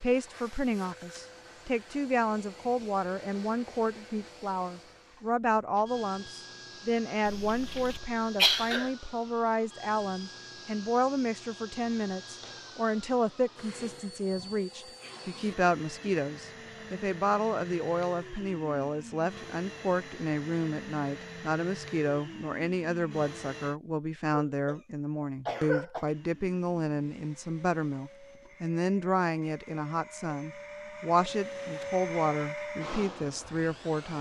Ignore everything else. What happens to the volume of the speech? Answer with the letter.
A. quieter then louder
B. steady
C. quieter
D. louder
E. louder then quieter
B.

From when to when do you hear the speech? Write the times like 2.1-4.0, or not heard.
0.0-34.1.